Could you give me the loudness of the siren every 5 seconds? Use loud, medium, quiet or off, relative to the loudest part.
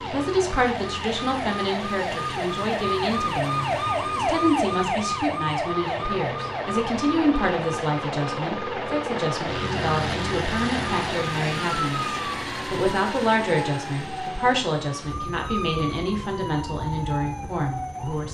loud, loud, medium, medium.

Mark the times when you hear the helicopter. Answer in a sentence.
The helicopter can be heard from 0.0 to 18.2 s.